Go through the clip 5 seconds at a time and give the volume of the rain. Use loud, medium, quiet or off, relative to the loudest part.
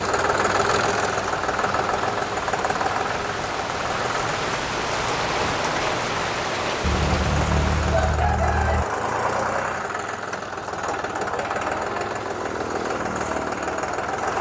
loud, loud, off.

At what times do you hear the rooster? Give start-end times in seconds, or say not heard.
6.8-8.8.